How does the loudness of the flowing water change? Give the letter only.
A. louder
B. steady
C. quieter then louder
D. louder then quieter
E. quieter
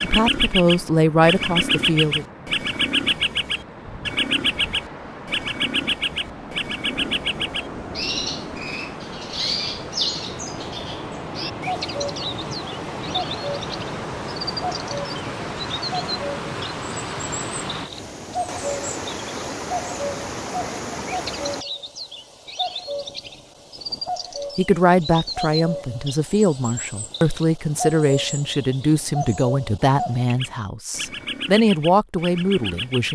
A.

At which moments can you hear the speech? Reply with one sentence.
The speech can be heard from 0.0 to 2.2 s and from 24.6 to 33.1 s.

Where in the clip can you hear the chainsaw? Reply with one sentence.
The chainsaw can't be heard in this clip.